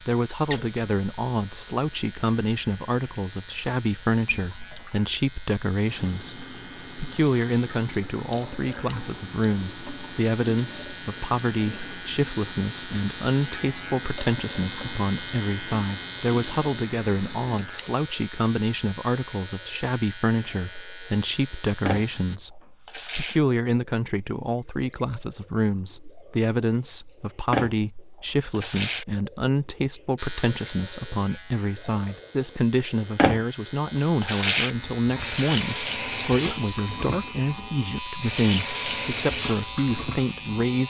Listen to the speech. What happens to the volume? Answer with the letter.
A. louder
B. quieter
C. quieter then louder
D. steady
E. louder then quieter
D.